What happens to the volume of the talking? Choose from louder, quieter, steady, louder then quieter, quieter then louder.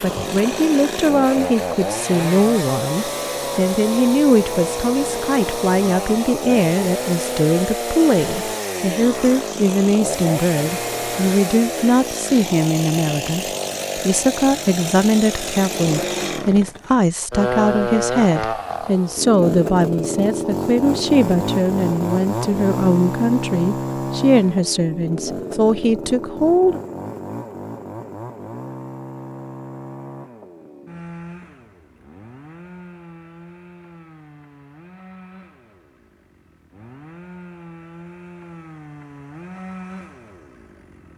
steady.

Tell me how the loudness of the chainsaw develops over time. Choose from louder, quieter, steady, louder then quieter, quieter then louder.
quieter.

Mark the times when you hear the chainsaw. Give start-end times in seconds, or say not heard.
0.0-41.1.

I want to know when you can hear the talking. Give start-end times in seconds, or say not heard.
0.0-26.8.